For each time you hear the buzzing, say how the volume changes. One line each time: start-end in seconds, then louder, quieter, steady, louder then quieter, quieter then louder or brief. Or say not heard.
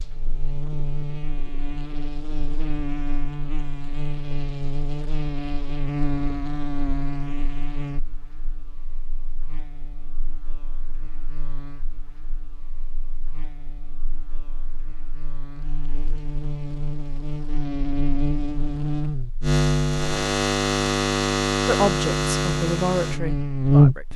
0.0-24.1 quieter then louder.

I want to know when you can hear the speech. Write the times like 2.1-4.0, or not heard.
21.6-24.1.